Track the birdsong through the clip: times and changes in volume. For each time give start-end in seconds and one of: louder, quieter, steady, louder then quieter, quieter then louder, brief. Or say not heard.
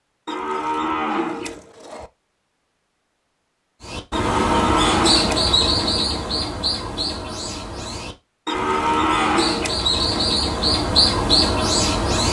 3.8-12.2 quieter then louder.